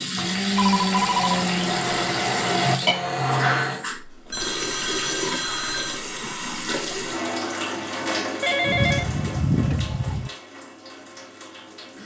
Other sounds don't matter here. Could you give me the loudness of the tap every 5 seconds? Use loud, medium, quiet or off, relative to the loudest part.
loud, loud, quiet.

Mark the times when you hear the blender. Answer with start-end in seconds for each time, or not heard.
0.1-3.9.